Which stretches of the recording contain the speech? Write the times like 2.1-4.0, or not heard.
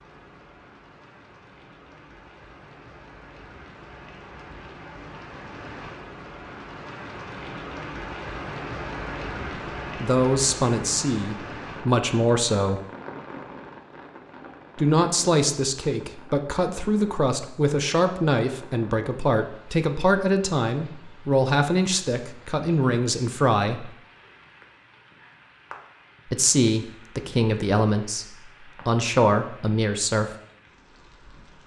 10.0-12.8, 14.8-23.9, 26.3-30.3.